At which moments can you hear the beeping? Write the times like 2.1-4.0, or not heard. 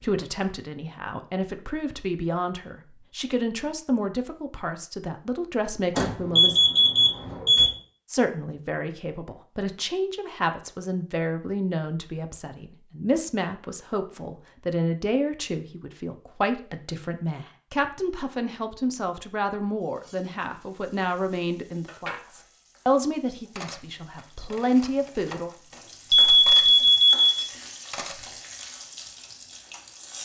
6.0-7.7, 26.1-27.2.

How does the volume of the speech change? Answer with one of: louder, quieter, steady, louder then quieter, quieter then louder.
steady.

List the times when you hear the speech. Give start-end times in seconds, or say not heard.
0.0-6.6, 8.1-25.5.